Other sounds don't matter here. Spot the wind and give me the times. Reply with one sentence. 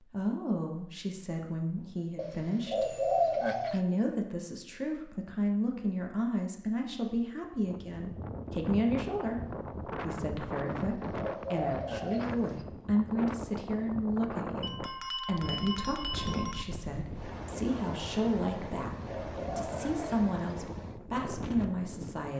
You can hear the wind from 7.7 to 22.3 s.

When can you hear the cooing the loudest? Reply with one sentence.
The volume of the cooing peaks at 3 seconds.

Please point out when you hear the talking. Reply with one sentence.
The talking can be heard from 0.0 to 22.3 s.